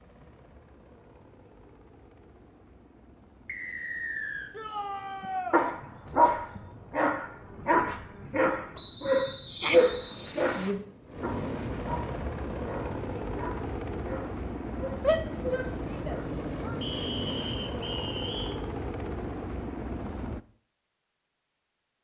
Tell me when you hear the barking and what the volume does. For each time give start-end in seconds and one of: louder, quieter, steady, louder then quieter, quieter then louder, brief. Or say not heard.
5.2-16.3 quieter.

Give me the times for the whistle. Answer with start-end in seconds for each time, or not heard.
3.5-4.5, 8.8-10.8, 16.8-18.6.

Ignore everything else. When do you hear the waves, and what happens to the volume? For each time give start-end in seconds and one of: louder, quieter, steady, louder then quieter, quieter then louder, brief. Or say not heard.
not heard.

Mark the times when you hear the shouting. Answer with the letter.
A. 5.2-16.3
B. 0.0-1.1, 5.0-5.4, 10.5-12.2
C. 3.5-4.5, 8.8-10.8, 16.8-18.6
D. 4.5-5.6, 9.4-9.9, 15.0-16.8
D.